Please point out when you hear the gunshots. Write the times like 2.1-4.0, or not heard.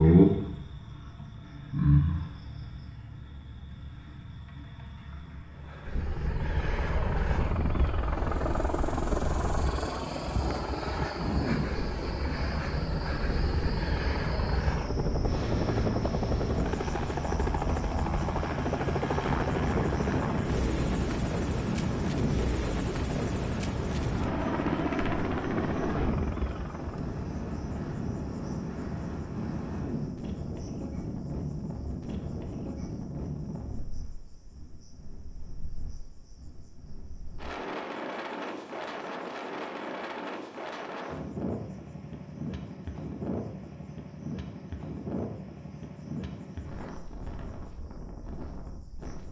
not heard.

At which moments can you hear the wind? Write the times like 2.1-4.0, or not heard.
11.2-49.2.